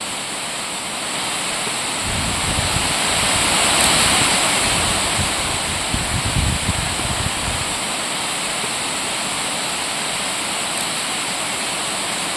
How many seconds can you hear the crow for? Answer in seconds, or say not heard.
6 s.